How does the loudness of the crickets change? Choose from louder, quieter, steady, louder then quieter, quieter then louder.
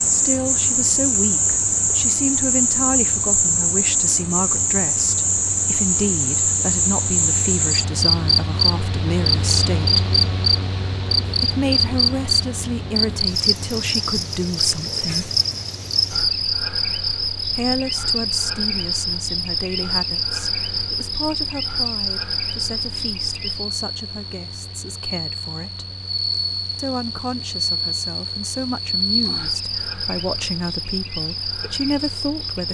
quieter.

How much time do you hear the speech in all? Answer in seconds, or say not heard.
28 s.